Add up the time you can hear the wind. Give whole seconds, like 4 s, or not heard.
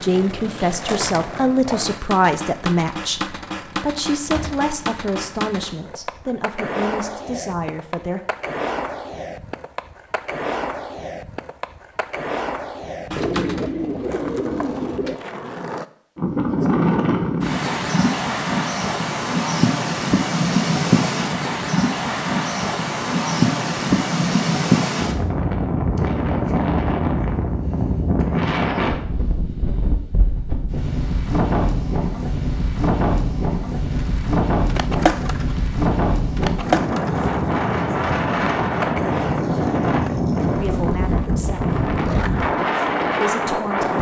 28 s.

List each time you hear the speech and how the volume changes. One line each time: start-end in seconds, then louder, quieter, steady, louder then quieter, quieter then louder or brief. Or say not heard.
0.0-8.2 quieter
40.5-41.8 brief
43.2-43.9 brief.